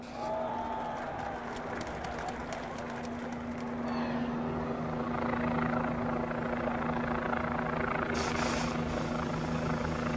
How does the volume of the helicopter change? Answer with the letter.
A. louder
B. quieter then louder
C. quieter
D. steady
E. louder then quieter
A.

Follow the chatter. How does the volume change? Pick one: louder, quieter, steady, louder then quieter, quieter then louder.
quieter.